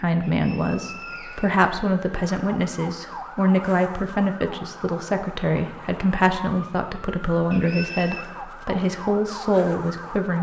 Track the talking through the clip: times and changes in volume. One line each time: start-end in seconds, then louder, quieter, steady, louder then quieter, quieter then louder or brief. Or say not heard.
0.0-10.3 steady.